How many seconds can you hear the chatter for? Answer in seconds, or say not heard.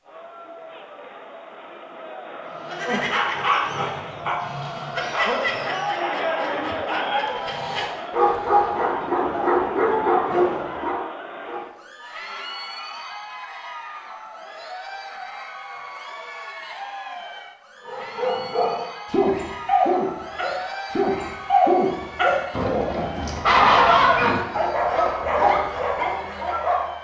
27 s.